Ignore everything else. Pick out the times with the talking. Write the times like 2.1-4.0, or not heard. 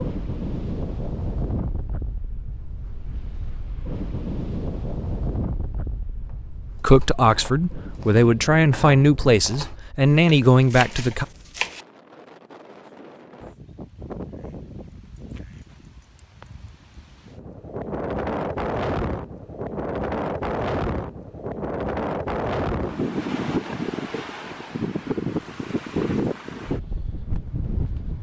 6.8-11.2.